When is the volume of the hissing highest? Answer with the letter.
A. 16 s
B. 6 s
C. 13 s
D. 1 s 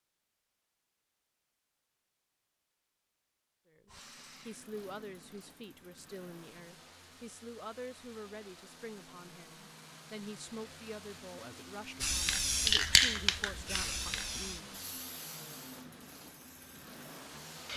C.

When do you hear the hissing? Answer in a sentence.
You can hear the hissing from 12.0 to 17.7 s.